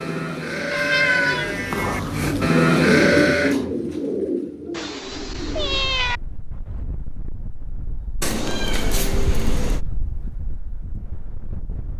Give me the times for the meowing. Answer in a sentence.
You can hear the meowing from 0.7 to 2.5 s, from 4.7 to 6.2 s and from 8.2 to 9.8 s.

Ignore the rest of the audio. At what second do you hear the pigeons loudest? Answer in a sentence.
The loudest moment of the pigeons is at 3 seconds.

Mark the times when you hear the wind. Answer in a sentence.
You can hear the wind from 5.0 to 11.9 s.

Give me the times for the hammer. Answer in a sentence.
The hammer can't be heard in this clip.